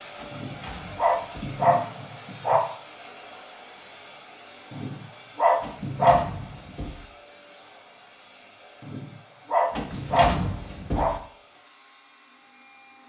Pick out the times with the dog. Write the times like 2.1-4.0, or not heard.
0.3-2.6, 4.7-6.5, 8.8-11.1.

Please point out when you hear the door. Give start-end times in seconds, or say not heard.
0.1-1.6, 5.6-7.1, 9.7-11.2.